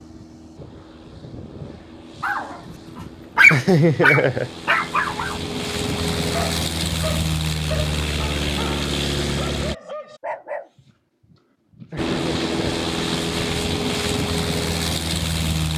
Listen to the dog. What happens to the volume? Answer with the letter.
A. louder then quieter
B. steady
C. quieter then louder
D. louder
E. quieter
E.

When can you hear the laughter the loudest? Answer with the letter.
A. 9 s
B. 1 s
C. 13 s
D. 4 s
D.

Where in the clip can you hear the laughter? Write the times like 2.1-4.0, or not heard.
3.5-4.5, 11.9-12.7.